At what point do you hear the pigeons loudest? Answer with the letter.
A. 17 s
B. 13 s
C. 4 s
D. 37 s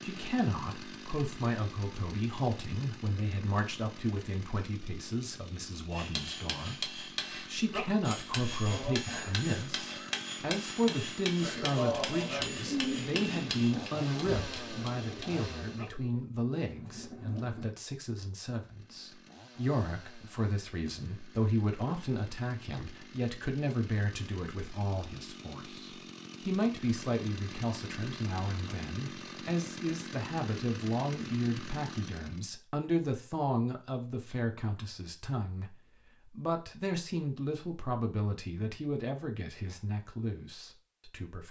B.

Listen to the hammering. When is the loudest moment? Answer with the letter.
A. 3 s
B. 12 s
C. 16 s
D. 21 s
B.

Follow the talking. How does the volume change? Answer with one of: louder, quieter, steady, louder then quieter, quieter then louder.
steady.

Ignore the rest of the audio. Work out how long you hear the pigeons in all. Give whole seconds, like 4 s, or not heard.
5 s.